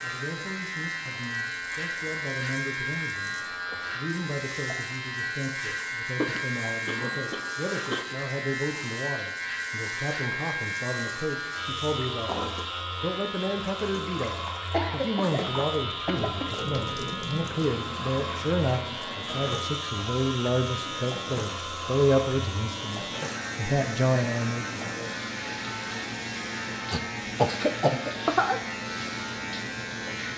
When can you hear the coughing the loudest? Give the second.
28 s.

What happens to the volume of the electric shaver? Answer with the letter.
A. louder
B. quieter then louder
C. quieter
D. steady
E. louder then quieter
D.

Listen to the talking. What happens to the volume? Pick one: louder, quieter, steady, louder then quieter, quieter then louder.
louder.